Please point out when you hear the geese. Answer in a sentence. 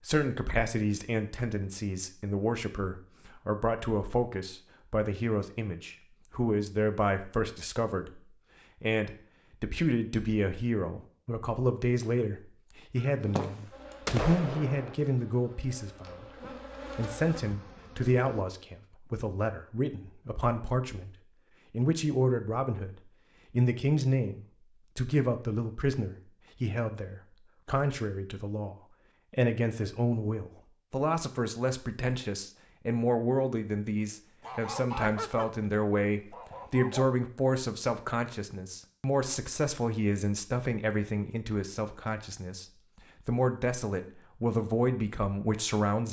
You can hear the geese from 12.9 to 14.9 s and from 34.4 to 37.1 s.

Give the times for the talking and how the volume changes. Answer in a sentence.
The talking can be heard from 0.0 to 46.0 s, at a steady volume.